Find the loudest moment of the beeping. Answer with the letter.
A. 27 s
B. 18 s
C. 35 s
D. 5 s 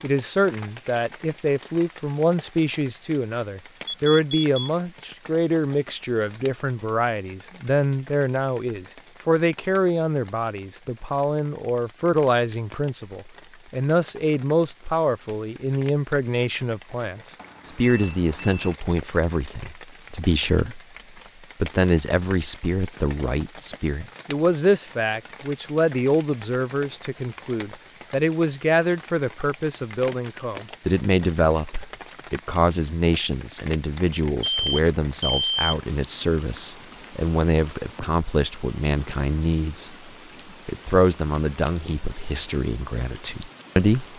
C.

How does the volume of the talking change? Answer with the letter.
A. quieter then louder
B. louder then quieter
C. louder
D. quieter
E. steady
E.